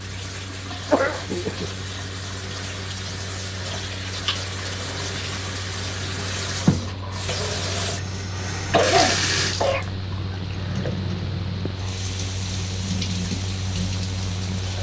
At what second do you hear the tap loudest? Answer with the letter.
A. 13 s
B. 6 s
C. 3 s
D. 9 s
D.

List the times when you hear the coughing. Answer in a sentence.
You can hear the coughing from 0.9 to 1.7 s and from 8.6 to 10.1 s.